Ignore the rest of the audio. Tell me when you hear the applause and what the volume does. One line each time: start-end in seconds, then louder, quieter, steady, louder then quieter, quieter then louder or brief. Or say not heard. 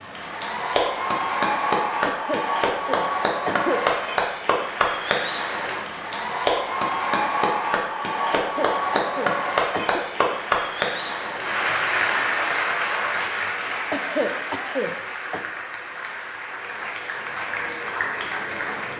0.0-18.9 quieter.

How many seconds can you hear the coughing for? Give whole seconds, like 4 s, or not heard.
5 s.